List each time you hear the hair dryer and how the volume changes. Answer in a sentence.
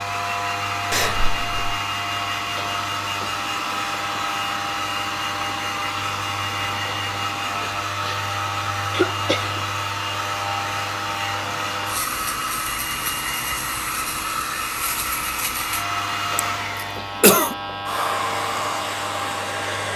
The hair dryer can be heard from 0.0 to 19.9 s, at a steady volume.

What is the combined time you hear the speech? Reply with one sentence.
The speech can't be heard in this clip.